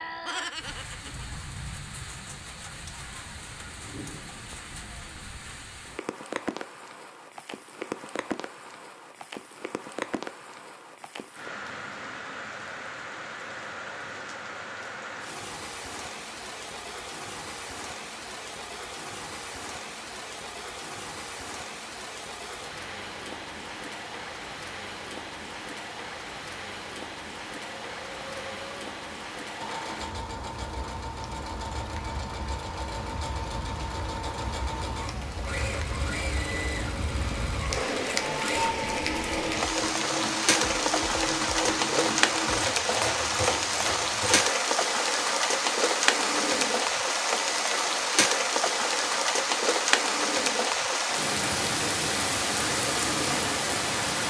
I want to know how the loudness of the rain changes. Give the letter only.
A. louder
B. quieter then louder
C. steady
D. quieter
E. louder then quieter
A.